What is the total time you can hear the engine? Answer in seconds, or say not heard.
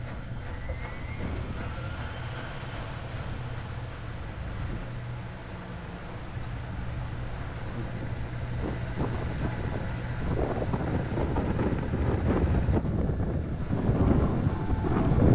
15 s.